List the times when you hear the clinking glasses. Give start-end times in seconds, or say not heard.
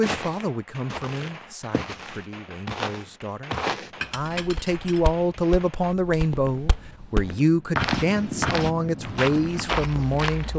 4.0-5.1.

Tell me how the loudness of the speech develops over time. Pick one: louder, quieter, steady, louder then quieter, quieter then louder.
louder.